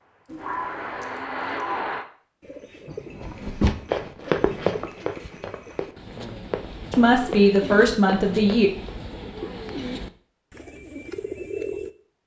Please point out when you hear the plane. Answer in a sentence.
The plane can be heard from 0.0 to 2.0 s.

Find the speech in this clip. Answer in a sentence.
The speech can be heard from 6.9 to 8.7 s.